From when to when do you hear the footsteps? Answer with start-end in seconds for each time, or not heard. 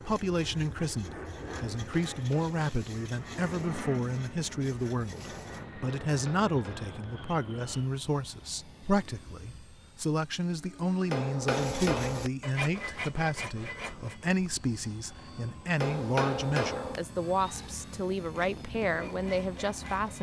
not heard.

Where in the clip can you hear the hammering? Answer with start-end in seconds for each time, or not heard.
1.8-2.5, 6.0-7.0, 11.1-12.3, 15.8-17.0.